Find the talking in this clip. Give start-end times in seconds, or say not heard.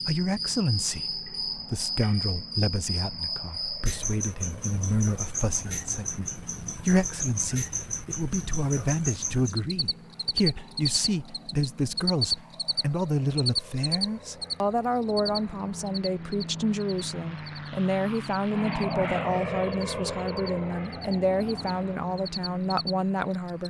0.1-23.6.